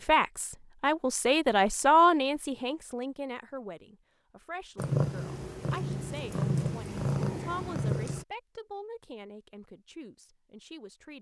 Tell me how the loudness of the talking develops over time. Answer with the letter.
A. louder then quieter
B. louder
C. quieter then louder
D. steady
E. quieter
E.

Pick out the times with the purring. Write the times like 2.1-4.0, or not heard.
4.8-8.2.